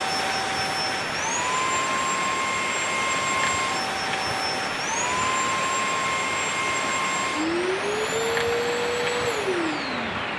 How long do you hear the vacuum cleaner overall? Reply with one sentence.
You can hear the vacuum cleaner for 10 seconds altogether.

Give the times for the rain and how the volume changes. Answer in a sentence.
You can hear the rain from 0.0 to 10.3 s, at a steady volume.